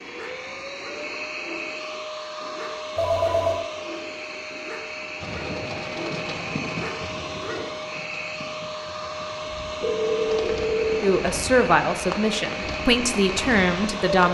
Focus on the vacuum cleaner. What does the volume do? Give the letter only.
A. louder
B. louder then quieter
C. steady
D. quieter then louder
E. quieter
C.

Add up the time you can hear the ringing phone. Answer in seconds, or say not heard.
2 s.